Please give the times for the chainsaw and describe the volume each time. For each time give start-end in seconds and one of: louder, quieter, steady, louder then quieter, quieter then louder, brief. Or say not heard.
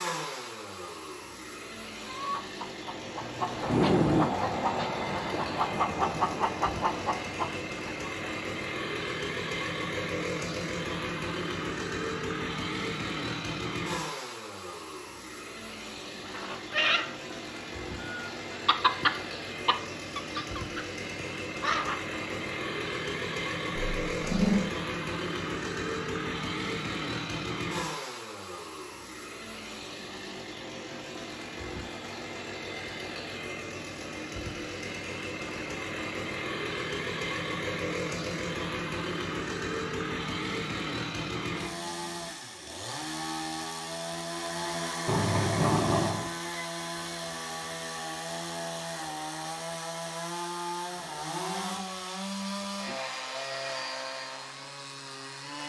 0.0-55.6 steady.